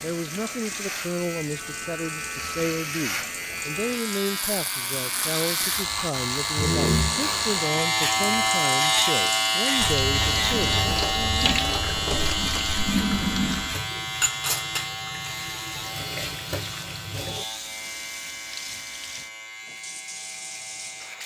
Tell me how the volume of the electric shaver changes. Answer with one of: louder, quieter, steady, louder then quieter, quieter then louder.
louder then quieter.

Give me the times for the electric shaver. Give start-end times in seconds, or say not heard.
0.0-21.2.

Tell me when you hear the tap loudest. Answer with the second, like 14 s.
13 s.